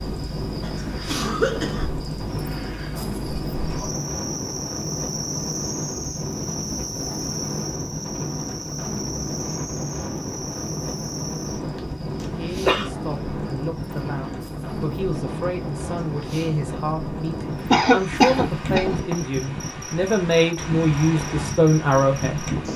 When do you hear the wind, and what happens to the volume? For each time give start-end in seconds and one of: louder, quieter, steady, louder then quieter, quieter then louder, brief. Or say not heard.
0.0-22.7 steady.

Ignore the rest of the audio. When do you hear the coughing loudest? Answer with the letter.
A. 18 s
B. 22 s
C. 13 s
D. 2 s
A.